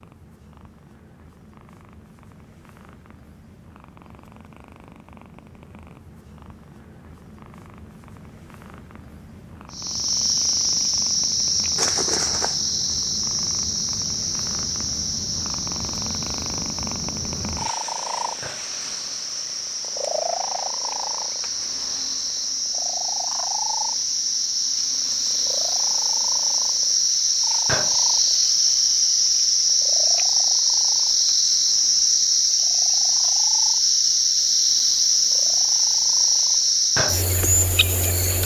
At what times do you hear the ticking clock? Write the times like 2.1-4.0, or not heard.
not heard.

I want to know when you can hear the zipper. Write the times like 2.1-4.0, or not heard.
11.8-12.6.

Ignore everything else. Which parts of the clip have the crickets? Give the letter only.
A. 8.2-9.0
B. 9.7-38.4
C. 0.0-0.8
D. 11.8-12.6
B.